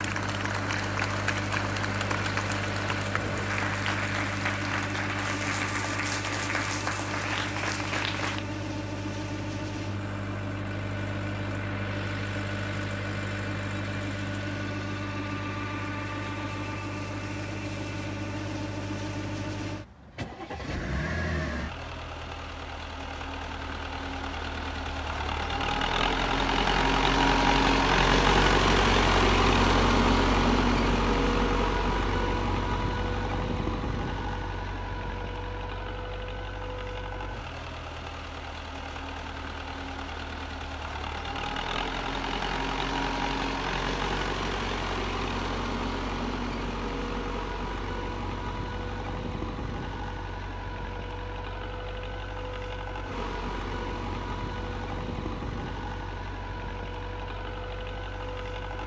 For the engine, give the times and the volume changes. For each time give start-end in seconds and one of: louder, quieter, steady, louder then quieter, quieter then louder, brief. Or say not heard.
0.0-58.8 louder then quieter.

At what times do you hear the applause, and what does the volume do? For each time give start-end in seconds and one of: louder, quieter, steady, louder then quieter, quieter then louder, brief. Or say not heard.
0.0-8.4 steady.